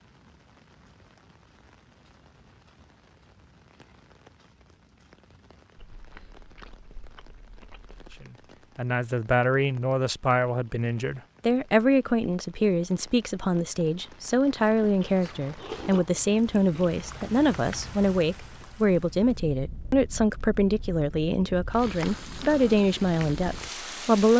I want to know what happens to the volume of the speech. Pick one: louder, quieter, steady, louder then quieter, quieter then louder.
steady.